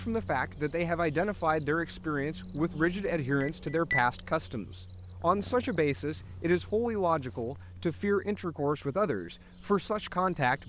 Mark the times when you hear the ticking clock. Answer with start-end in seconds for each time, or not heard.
not heard.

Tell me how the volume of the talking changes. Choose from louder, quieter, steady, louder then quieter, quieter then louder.
steady.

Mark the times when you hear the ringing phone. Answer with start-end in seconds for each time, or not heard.
3.4-4.0.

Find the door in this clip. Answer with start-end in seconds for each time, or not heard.
not heard.